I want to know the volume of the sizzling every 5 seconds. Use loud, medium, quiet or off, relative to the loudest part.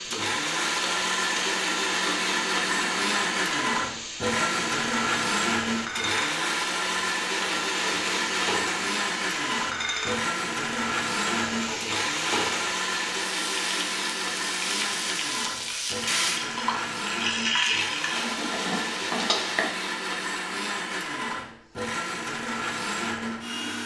medium, loud, loud, loud, off.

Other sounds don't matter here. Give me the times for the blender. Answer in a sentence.
You can hear the blender from 0.1 to 23.8 s.